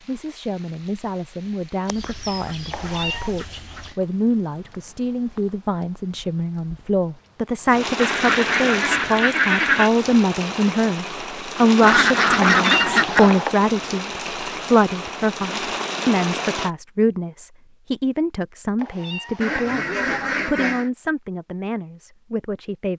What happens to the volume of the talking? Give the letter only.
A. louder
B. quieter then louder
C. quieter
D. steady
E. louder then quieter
E.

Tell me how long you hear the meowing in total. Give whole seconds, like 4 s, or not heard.
3 s.